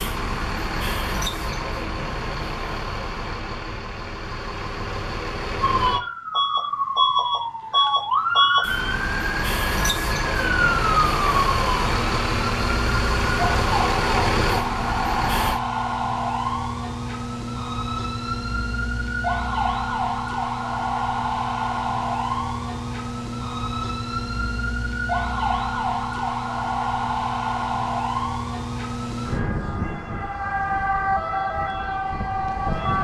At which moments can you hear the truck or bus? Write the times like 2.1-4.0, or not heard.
0.0-15.6.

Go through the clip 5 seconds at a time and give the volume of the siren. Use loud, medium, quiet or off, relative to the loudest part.
off, loud, loud, loud, loud, loud, loud.